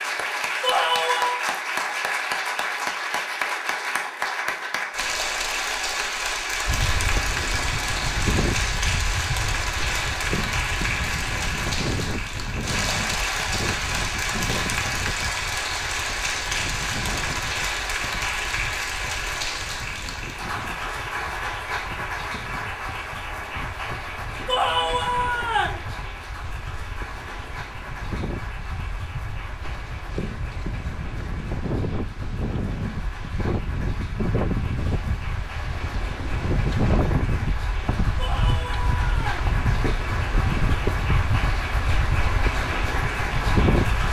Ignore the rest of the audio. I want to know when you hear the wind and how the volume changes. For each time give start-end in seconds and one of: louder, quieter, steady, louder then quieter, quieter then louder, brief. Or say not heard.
6.7-44.0 quieter then louder.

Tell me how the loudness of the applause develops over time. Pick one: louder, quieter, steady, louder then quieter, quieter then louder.
quieter then louder.